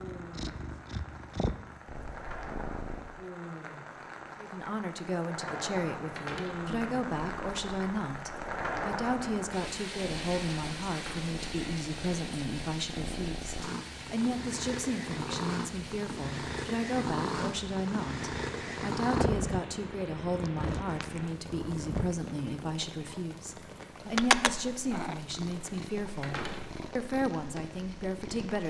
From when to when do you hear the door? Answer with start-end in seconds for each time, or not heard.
6.2-6.7, 10.9-11.3, 26.2-26.8.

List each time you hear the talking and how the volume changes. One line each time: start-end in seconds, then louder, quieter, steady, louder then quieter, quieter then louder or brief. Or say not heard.
4.4-28.6 steady.